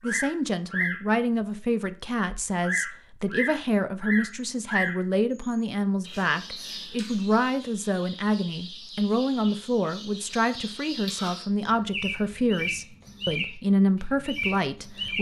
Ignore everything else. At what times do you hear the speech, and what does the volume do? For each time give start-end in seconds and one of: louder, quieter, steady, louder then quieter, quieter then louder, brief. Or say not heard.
0.0-15.1 steady.